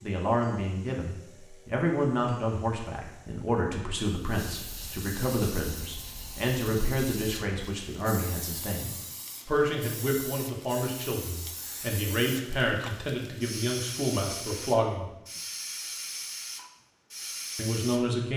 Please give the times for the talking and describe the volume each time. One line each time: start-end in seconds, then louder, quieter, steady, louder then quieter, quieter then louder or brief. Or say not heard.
0.0-15.1 steady
17.6-18.3 brief.